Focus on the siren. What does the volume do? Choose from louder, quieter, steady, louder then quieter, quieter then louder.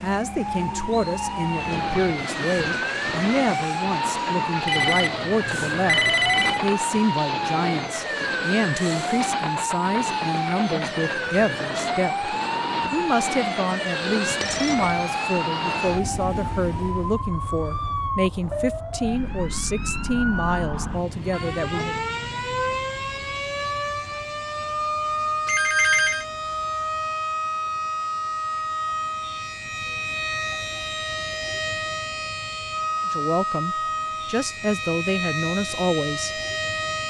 steady.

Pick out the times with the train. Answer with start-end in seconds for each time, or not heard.
1.3-17.2.